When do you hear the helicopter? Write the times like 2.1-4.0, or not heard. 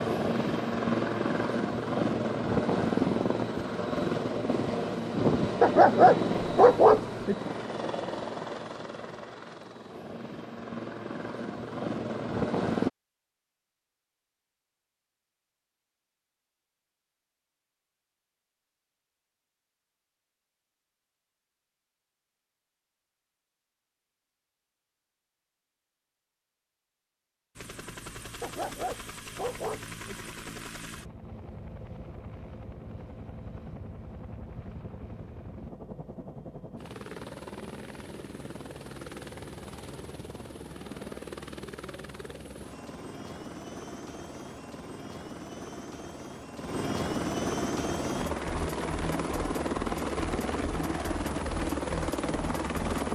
0.0-12.9, 27.6-53.1.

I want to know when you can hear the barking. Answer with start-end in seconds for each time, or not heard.
5.6-7.3, 28.4-30.1.